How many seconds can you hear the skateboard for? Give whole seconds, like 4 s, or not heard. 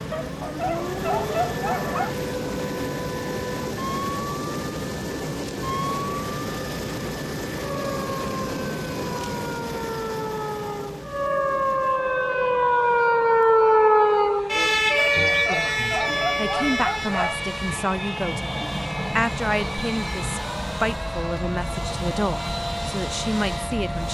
not heard.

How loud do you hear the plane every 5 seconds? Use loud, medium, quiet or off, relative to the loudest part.
loud, loud, medium, loud, loud.